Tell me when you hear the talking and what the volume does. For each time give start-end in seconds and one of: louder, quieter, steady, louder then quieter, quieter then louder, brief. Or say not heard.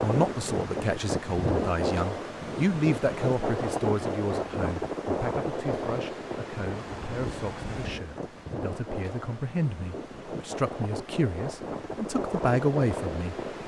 0.0-13.3 quieter then louder.